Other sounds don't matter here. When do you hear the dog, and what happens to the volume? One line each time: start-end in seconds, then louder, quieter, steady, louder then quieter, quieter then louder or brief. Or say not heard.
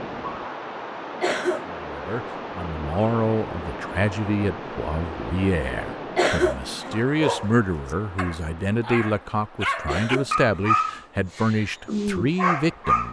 7.1-13.0 louder.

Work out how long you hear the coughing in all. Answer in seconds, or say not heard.
2 s.